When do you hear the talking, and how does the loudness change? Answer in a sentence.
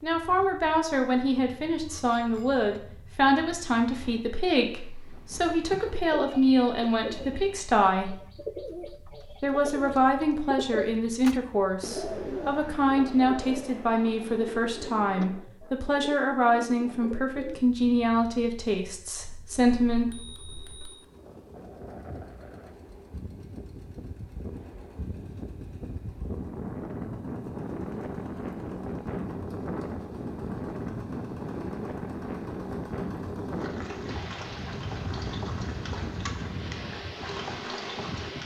The talking can be heard from 0.0 to 8.2 s, at a steady volume; and from 9.4 to 20.1 s, at a steady volume.